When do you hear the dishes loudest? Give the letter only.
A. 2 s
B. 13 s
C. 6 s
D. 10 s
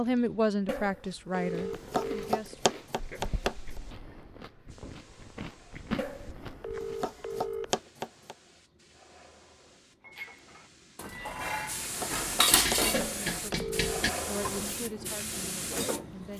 B.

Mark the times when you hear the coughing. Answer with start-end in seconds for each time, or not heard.
not heard.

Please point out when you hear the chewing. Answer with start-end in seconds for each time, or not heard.
1.4-7.0.